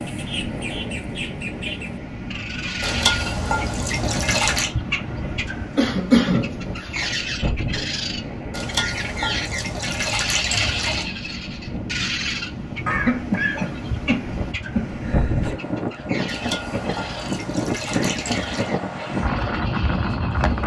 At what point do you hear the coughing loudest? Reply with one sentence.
The loudest moment of the coughing is at 6 seconds.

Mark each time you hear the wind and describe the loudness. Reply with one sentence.
You can hear the wind from 0.0 to 20.6 s, getting louder.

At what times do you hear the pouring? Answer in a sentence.
The pouring can be heard from 2.8 to 4.7 s, from 8.5 to 11.1 s and from 16.2 to 18.8 s.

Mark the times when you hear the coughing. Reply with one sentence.
The coughing can be heard from 5.8 to 7.2 s and from 12.8 to 15.6 s.